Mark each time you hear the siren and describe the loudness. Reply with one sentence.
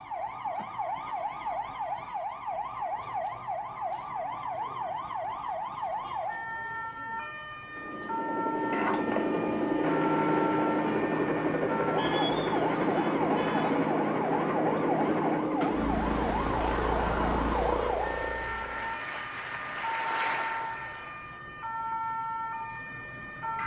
The siren can be heard from 0.0 to 23.6 s, at a steady volume.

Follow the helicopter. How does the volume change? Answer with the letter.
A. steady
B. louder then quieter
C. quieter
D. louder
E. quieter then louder
A.